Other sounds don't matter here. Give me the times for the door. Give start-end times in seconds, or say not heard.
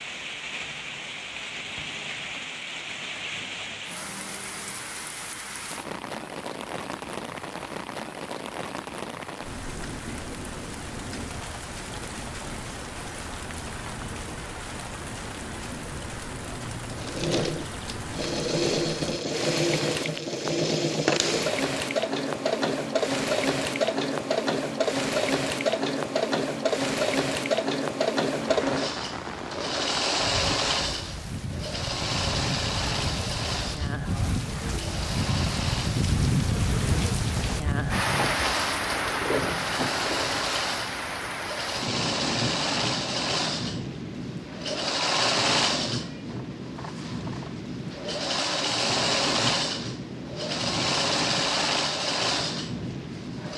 not heard.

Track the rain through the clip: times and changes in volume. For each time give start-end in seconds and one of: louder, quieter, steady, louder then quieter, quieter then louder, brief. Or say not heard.
0.0-53.5 louder then quieter.